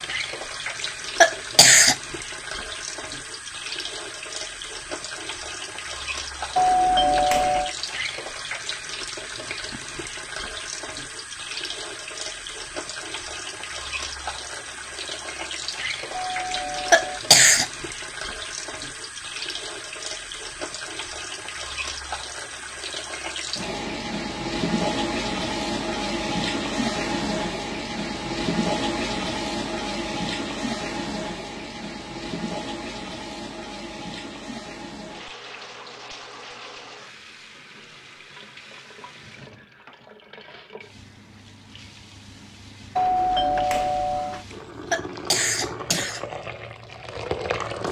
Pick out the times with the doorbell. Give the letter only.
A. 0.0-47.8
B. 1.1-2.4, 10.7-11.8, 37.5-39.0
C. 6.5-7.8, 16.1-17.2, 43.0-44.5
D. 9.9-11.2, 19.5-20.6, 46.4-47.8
C.